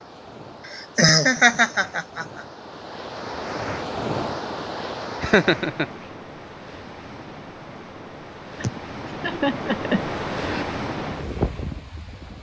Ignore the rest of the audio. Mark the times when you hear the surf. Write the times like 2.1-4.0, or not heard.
0.0-12.3.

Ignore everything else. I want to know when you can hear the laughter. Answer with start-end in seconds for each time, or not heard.
0.7-2.4, 5.2-5.8, 8.6-10.7.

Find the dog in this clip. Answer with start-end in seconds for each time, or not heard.
not heard.